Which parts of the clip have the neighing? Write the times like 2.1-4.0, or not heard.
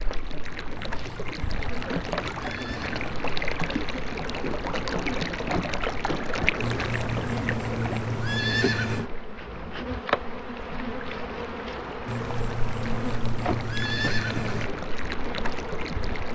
0.8-3.0, 6.6-9.1, 12.1-14.7.